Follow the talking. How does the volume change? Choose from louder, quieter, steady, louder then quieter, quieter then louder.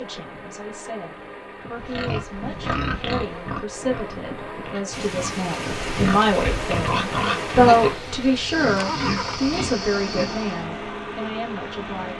louder then quieter.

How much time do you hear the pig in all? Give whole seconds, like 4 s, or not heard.
9 s.